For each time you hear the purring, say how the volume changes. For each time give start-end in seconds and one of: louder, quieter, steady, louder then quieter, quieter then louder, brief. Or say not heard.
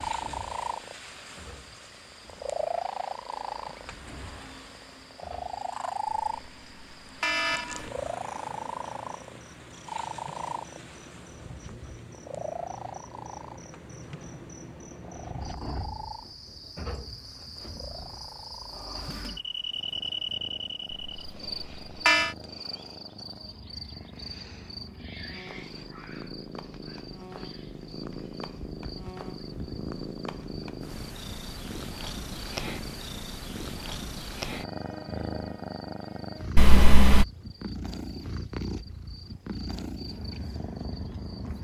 0.0-41.5 quieter then louder.